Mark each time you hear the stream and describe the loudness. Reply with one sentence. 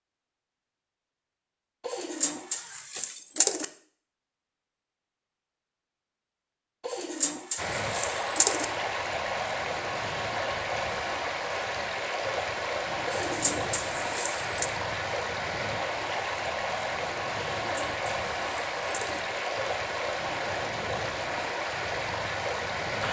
The stream can be heard from 7.5 to 23.0 s, at a steady volume.